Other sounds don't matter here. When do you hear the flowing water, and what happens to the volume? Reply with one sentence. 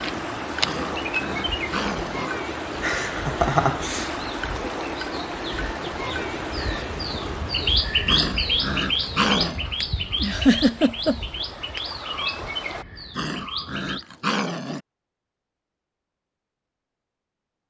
You can hear the flowing water from 0.0 to 12.8 s, getting quieter.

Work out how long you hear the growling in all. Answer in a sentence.
You can hear the growling for 5 seconds altogether.